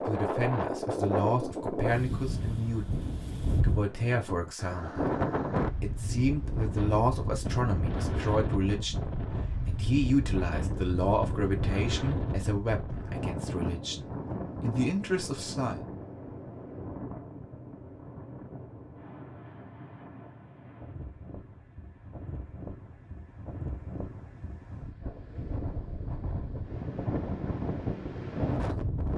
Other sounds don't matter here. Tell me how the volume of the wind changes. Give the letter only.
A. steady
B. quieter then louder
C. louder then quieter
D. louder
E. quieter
B.